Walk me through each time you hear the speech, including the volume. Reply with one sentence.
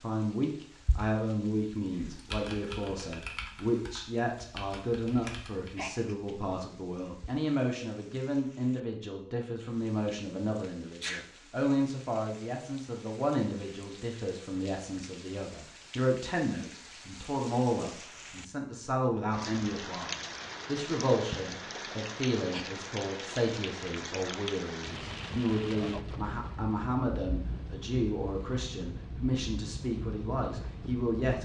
The speech can be heard from 0.0 to 31.3 s, at a steady volume.